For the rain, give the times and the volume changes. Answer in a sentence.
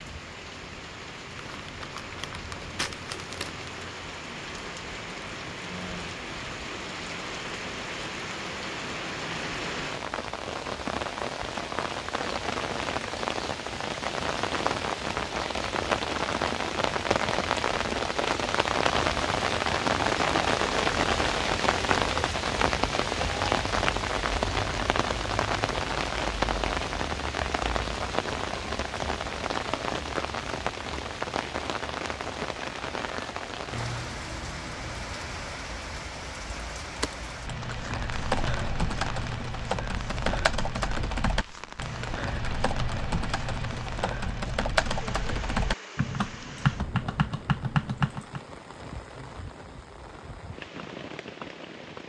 The rain can be heard from 0.0 to 52.0 s, getting louder then quieter.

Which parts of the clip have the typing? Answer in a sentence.
The typing can be heard from 37.0 to 48.4 s.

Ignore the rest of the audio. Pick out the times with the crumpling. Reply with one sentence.
You can hear the crumpling from 1.4 to 3.8 s.